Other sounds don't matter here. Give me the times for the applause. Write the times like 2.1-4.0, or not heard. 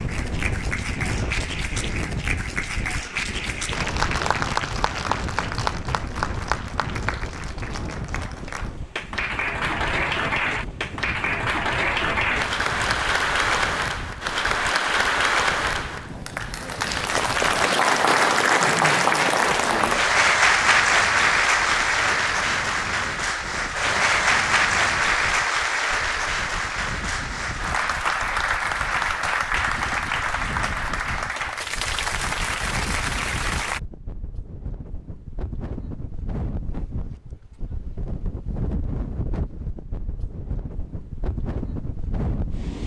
0.0-33.8.